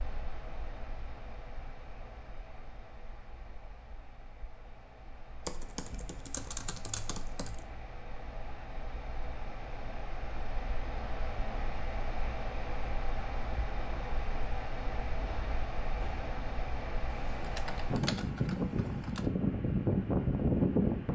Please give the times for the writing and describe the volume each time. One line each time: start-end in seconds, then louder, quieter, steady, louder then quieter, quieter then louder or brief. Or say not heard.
not heard.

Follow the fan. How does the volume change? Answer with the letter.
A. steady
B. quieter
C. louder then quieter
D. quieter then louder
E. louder
E.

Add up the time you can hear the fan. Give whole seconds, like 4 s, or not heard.
21 s.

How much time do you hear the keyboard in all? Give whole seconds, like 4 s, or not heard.
4 s.